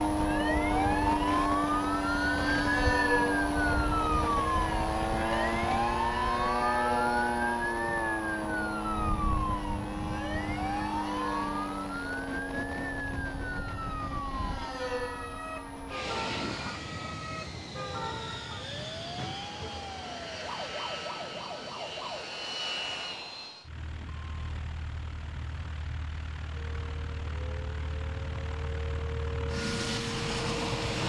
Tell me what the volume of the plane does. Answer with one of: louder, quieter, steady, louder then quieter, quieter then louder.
quieter.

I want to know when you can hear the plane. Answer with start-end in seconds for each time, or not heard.
0.0-31.0.